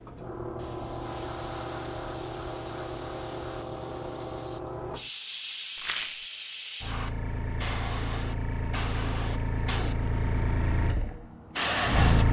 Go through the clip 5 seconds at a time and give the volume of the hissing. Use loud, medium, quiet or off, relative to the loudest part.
medium, medium, loud.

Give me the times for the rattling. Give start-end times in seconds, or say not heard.
5.8-6.2.